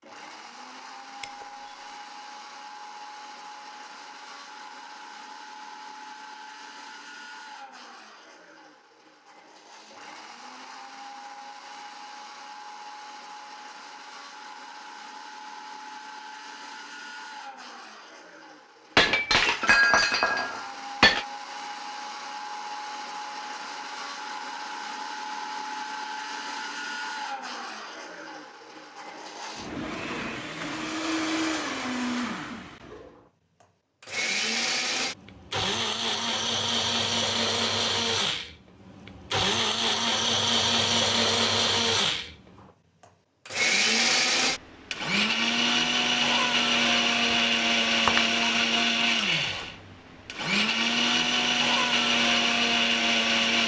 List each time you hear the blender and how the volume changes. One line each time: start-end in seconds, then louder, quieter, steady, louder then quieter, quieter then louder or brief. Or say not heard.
0.0-53.6 louder.